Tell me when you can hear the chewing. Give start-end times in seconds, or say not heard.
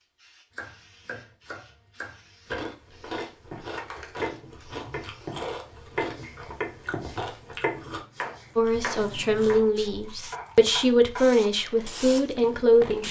2.5-10.8.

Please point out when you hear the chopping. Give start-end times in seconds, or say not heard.
0.5-11.2.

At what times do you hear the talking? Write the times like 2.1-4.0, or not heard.
8.6-13.0.